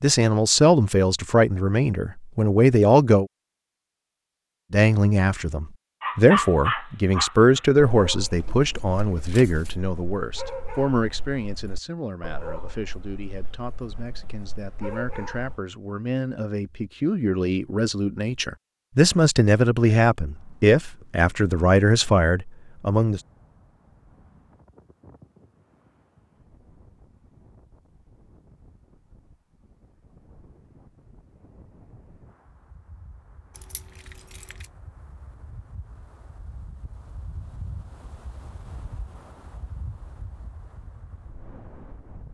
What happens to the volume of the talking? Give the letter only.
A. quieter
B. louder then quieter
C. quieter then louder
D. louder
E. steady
C.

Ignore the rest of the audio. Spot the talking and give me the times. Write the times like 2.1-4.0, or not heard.
0.0-3.2, 4.7-23.2.